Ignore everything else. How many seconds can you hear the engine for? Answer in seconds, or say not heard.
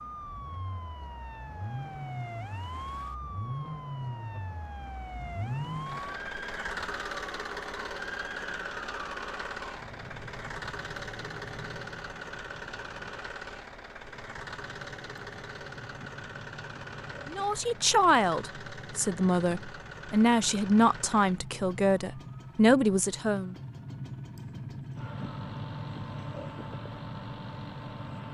28 s.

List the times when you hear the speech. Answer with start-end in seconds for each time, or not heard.
17.3-23.6.